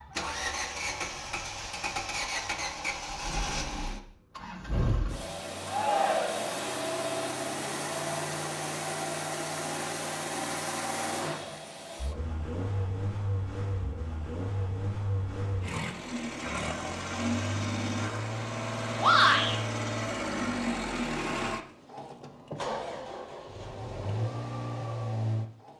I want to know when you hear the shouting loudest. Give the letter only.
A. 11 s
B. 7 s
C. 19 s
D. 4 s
C.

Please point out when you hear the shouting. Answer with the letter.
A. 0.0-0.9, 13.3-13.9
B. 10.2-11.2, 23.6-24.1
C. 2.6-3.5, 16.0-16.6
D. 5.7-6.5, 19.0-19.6
D.